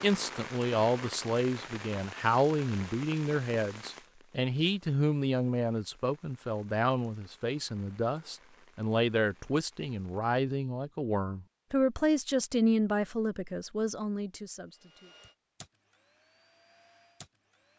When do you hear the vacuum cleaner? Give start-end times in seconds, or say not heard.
14.8-17.7.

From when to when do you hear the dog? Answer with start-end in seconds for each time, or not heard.
not heard.